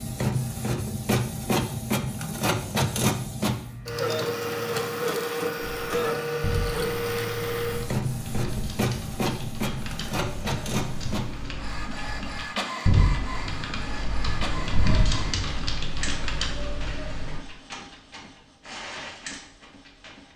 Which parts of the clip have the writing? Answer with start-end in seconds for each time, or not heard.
not heard.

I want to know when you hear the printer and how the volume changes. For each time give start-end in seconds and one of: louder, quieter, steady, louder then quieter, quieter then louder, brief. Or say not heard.
0.0-20.3 quieter.